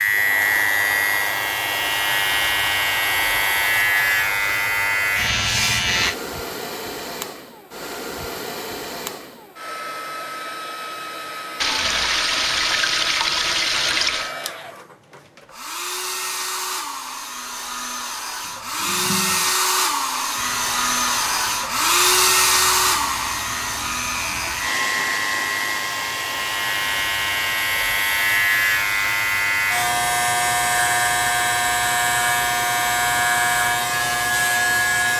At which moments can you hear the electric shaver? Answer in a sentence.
You can hear the electric shaver from 0.0 to 6.2 s and from 20.3 to 35.1 s.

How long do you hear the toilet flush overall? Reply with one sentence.
The toilet flush can be heard for 4 seconds in total.